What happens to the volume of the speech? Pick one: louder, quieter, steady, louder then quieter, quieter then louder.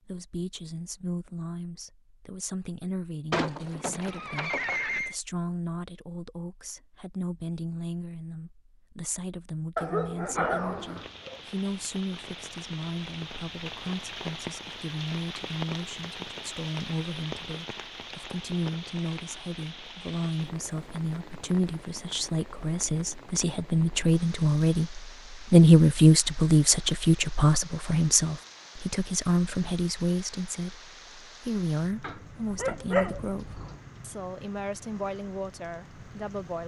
louder then quieter.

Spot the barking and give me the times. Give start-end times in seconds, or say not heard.
9.8-11.4, 32.0-33.8.